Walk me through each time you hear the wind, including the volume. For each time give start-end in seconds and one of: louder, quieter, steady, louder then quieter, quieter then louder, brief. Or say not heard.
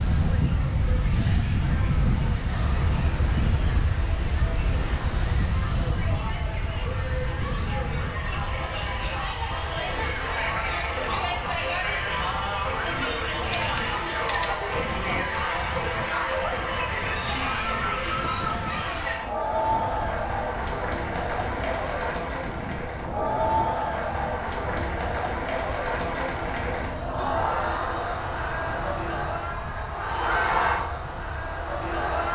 0.0-32.3 quieter.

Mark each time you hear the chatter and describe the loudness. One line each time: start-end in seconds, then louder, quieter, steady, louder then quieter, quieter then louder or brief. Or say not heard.
0.0-32.3 louder.